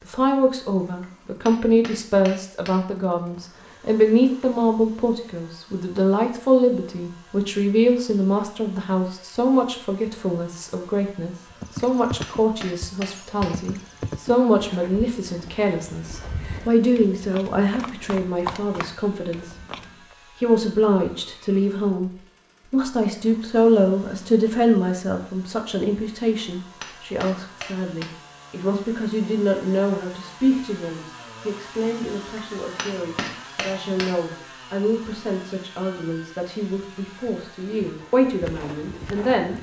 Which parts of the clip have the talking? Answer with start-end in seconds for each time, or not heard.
0.1-19.6, 20.4-39.5.